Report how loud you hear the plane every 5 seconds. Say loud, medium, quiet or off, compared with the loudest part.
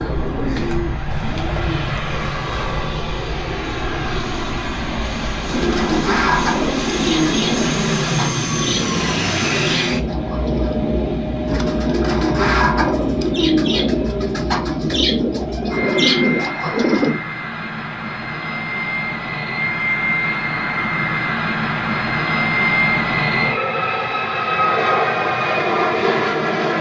medium, loud, medium, medium, loud, loud.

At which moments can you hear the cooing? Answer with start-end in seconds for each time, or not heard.
0.0-2.0, 5.4-17.2.